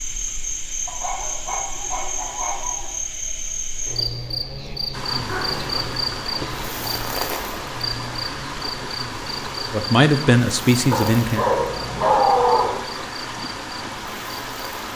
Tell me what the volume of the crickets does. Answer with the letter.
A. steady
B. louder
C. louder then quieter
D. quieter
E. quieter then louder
D.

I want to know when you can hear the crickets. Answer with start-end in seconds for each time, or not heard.
0.0-14.9.